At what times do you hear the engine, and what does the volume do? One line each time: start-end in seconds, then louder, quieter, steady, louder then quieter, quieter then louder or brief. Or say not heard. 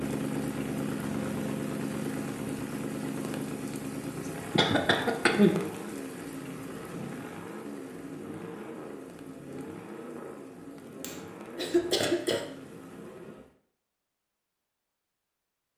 0.0-13.4 quieter.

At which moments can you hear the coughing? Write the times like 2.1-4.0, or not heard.
4.5-5.5, 11.0-12.4.